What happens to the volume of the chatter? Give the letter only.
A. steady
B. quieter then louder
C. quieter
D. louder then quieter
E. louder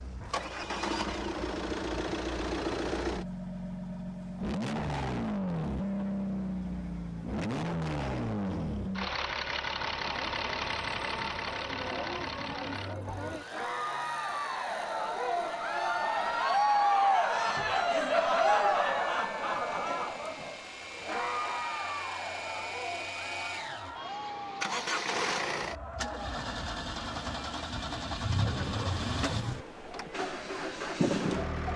D.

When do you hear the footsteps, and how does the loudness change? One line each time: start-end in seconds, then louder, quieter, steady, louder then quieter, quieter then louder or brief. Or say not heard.
not heard.